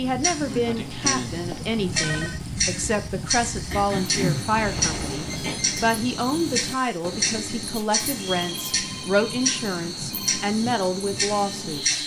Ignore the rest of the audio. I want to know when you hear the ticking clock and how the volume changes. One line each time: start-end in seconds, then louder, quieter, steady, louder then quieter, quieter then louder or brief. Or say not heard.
0.1-12.0 steady.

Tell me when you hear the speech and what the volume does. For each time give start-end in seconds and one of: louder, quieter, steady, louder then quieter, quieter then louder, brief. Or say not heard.
0.0-12.0 steady.